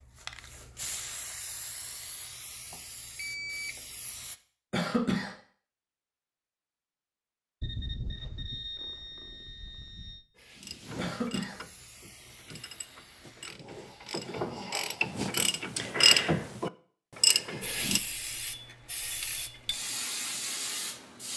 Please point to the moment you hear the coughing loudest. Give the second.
5 s.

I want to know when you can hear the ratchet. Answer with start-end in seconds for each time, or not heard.
10.3-18.0.